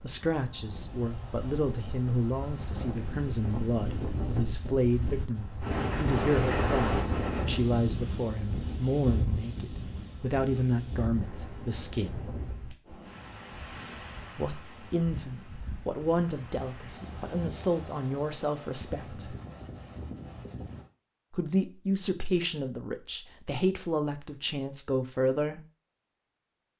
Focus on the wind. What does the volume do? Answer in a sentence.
The volume of the wind goes up, then down.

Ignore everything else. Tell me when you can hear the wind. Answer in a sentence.
The wind can be heard from 0.0 to 20.9 s.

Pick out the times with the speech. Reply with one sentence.
You can hear the speech from 0.0 to 12.2 s, from 14.3 to 19.4 s and from 21.3 to 25.6 s.